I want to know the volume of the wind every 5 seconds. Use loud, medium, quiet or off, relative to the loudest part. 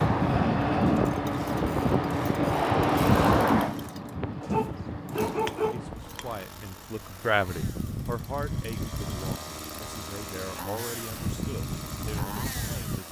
loud, quiet, medium.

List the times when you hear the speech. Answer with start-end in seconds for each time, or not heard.
5.7-13.0.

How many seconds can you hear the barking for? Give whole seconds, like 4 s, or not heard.
2 s.